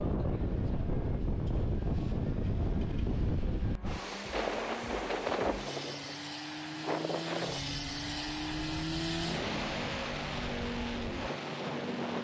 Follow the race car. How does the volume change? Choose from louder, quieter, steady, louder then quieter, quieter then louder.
louder.